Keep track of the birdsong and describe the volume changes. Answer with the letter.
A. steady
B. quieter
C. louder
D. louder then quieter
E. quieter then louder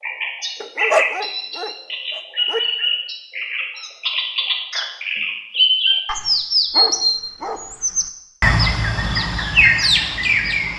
C.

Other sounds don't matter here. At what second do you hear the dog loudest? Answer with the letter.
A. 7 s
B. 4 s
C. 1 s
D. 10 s
C.